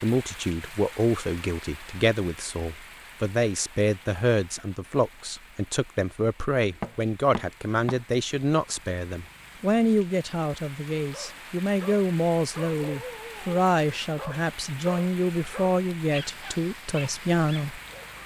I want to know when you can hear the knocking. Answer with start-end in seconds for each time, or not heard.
6.8-8.0.